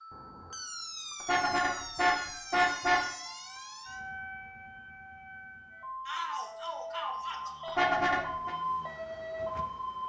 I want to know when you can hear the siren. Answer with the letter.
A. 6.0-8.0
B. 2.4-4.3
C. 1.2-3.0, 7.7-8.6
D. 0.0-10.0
D.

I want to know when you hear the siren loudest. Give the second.
9 s.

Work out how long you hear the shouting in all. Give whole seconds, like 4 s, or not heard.
2 s.